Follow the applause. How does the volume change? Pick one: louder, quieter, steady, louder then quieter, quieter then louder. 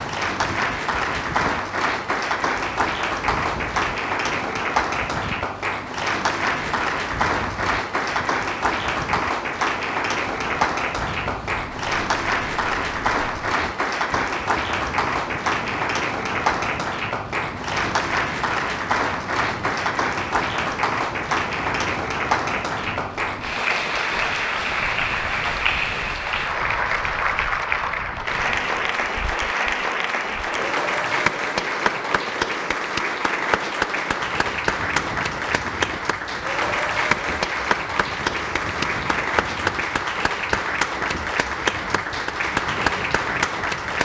steady.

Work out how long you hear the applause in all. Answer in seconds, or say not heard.
44 s.